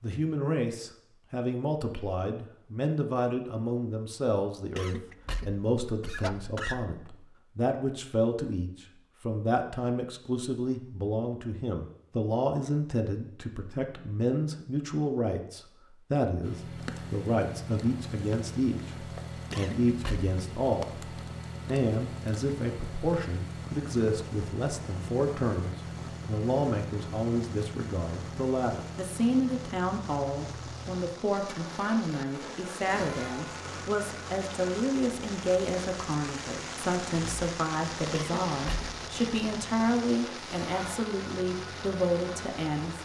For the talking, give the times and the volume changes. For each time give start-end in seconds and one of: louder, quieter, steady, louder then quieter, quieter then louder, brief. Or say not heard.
0.0-43.0 steady.